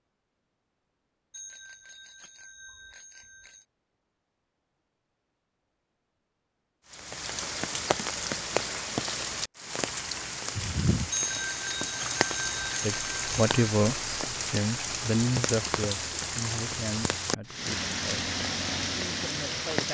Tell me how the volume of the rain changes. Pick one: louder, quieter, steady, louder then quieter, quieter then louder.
steady.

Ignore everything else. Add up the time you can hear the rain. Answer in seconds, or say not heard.
13 s.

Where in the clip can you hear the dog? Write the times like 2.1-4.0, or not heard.
not heard.